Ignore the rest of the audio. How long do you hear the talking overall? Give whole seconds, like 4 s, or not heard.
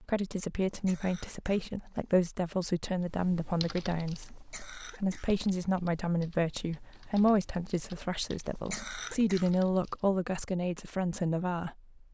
12 s.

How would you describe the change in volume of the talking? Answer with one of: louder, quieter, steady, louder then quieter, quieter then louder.
steady.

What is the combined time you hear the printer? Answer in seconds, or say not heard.
not heard.